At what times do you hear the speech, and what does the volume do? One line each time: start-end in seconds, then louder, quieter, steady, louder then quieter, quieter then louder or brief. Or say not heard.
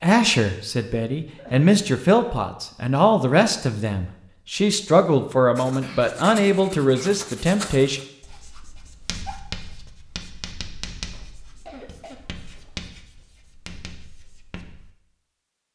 0.0-8.0 steady.